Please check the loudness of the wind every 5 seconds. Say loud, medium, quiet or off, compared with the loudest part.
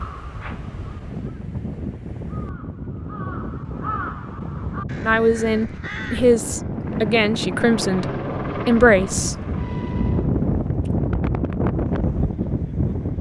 medium, medium, loud.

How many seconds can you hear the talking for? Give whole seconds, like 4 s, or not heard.
4 s.